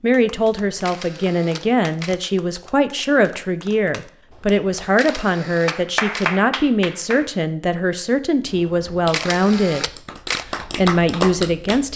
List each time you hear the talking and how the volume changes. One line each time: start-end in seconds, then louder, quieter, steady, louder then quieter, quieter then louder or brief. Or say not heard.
0.0-9.9 steady
10.6-11.9 brief.